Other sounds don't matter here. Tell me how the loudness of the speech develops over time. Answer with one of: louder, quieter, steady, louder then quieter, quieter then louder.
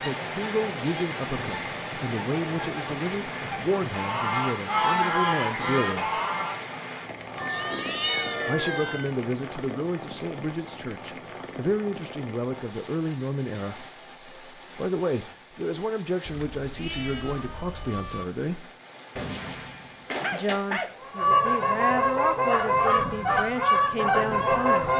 steady.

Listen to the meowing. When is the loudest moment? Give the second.
8 s.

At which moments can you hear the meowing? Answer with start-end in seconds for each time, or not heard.
7.3-9.2, 16.2-18.2.